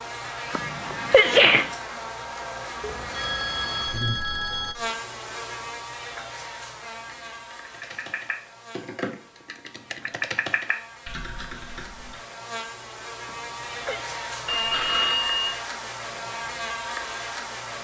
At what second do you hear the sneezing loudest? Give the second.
1 s.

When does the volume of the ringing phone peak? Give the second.
15 s.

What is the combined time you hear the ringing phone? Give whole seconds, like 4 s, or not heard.
3 s.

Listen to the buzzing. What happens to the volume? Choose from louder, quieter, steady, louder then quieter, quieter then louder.
quieter then louder.